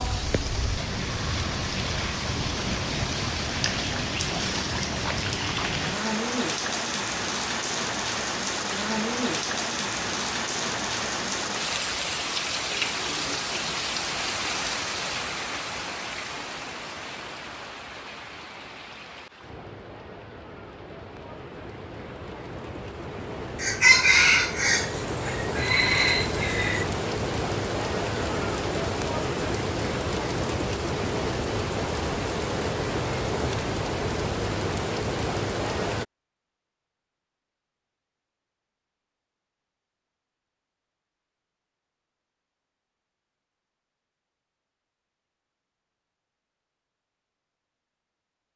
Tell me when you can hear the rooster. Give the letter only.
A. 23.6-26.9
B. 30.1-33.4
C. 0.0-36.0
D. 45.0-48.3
A.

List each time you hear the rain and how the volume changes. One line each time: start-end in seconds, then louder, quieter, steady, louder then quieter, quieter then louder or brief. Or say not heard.
0.0-36.0 quieter then louder.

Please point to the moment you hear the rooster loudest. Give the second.
24 s.